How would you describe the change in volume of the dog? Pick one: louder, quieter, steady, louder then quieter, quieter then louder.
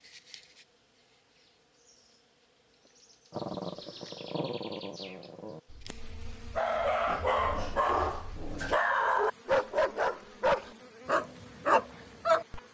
louder.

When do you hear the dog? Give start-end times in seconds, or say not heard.
3.3-12.6.